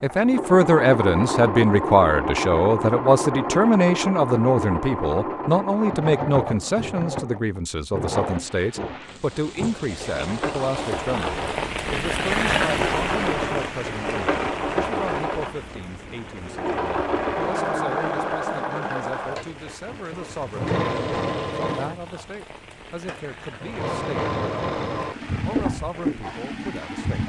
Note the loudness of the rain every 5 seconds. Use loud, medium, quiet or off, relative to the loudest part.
off, quiet, loud, quiet, quiet, quiet.